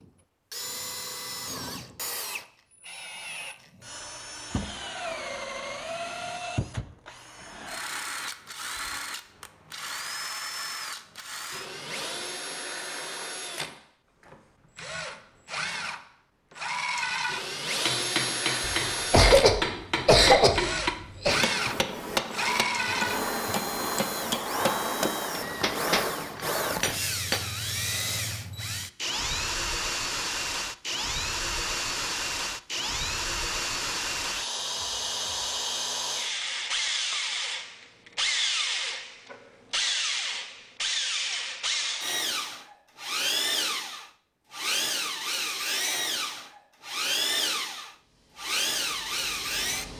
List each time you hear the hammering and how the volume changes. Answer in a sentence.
You can hear the hammering from 17.9 to 27.4 s, at a steady volume.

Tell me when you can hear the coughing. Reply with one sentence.
You can hear the coughing from 18.6 to 21.4 s.